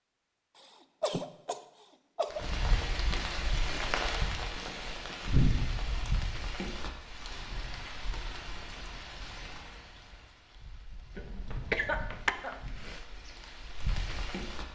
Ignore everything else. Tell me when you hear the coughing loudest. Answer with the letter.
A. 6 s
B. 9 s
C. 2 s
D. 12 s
D.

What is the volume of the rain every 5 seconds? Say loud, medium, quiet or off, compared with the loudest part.
loud, loud, medium.